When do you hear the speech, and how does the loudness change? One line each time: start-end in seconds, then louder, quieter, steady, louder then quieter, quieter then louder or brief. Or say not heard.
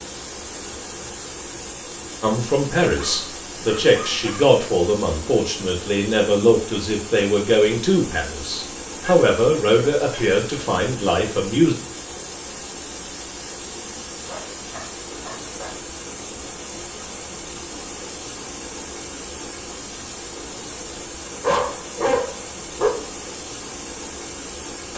2.2-11.8 steady.